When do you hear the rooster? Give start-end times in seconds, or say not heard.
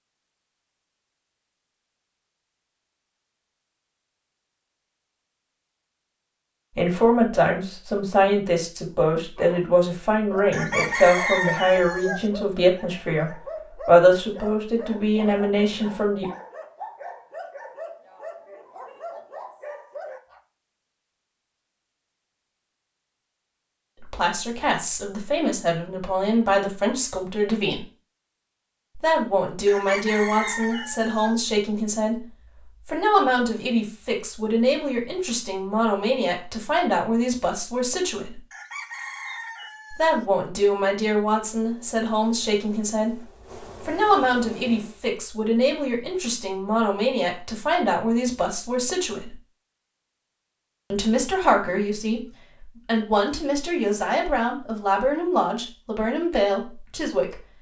10.5-12.2, 29.6-31.4, 38.5-40.2.